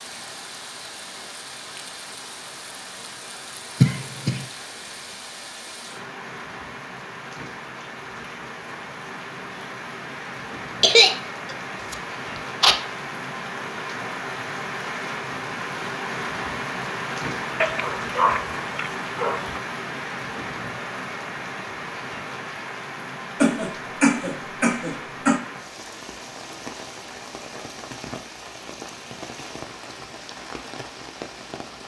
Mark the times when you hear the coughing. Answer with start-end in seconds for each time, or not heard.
3.8-4.5, 10.8-12.8, 23.4-25.4.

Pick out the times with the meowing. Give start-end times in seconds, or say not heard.
not heard.